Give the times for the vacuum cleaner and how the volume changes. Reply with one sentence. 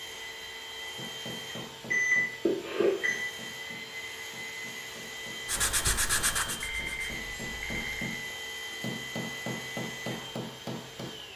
You can hear the vacuum cleaner from 0.0 to 11.3 s, at a steady volume.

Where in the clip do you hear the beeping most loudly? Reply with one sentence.
The loudest moment of the beeping is at 2 seconds.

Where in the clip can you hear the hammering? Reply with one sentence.
You can hear the hammering from 0.9 to 11.2 s.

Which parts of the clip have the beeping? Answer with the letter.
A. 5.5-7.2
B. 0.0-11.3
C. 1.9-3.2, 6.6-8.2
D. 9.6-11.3
C.